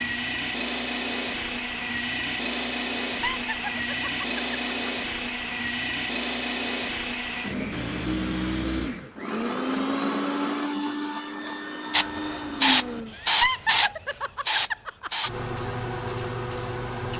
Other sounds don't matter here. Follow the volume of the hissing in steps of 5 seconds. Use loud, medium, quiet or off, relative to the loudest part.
off, off, loud, medium.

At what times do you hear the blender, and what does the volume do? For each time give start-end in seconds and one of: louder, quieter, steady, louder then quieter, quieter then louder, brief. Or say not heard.
0.0-13.2 steady.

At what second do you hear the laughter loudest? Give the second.
14 s.